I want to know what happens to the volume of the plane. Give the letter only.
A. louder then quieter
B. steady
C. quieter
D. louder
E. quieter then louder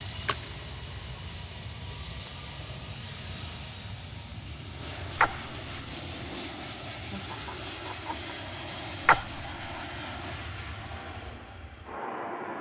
B.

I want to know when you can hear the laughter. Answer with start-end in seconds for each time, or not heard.
7.0-8.5.